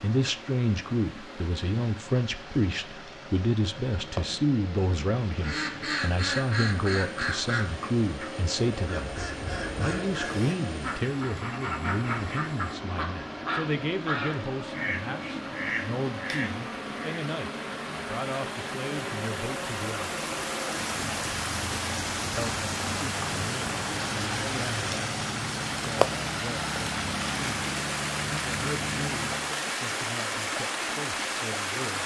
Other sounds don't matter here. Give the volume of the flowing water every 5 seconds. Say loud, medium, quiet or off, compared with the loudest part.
quiet, quiet, quiet, medium, loud, loud, loud.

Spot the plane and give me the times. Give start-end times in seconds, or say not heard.
0.1-29.7.